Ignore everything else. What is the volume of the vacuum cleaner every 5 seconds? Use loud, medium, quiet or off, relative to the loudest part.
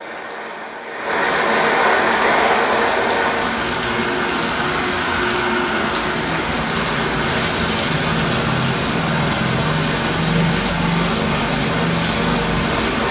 loud, loud, off.